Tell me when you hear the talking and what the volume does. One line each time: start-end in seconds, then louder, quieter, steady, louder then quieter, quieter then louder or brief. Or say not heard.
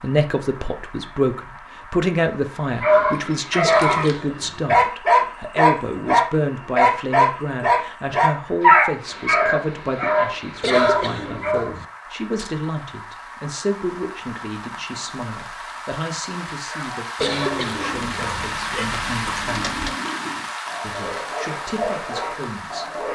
0.0-19.8 quieter
20.8-23.1 brief.